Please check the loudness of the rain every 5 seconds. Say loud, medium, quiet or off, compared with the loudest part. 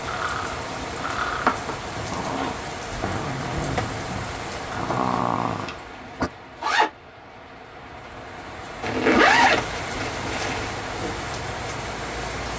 loud, medium, loud.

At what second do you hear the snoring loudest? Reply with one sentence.
The volume of the snoring peaks at 5 seconds.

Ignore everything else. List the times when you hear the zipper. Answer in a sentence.
You can hear the zipper from 1.4 to 2.7 s, from 5.0 to 6.9 s and from 8.8 to 10.8 s.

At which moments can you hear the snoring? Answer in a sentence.
The snoring can be heard from 0.1 to 6.3 s.